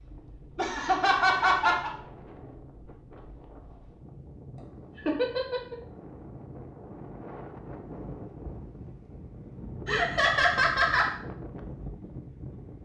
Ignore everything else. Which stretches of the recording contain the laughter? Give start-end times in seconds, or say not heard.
0.6-1.9, 5.0-5.8, 9.8-11.1.